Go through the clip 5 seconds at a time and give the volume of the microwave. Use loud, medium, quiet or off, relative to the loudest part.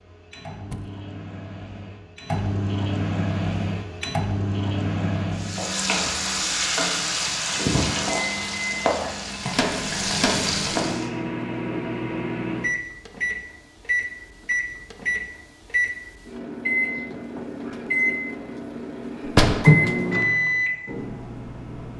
medium, medium, medium, loud, loud.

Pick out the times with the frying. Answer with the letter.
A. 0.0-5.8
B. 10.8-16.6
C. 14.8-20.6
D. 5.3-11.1
D.